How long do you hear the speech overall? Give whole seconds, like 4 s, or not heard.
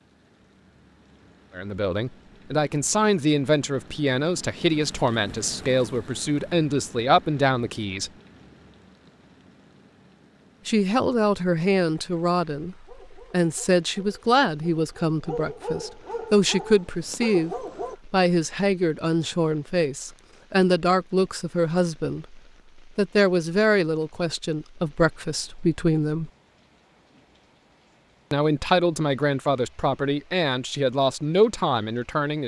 26 s.